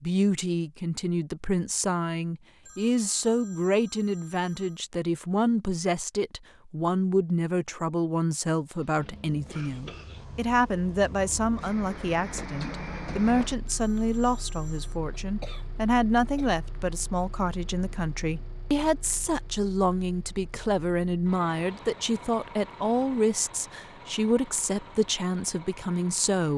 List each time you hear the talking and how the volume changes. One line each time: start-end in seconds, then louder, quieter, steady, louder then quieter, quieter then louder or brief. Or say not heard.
0.0-26.5 steady.